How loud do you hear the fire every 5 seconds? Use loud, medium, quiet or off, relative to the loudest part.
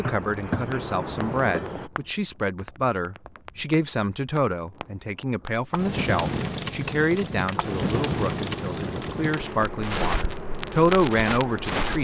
quiet, loud, loud.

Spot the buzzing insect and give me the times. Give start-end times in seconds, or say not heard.
0.0-1.9, 7.5-11.9.